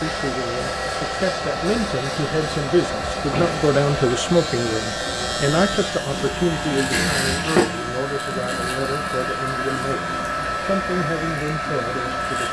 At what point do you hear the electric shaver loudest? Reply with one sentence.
The loudest moment of the electric shaver is at 7 seconds.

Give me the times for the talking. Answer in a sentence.
The talking can be heard from 0.0 to 12.4 s.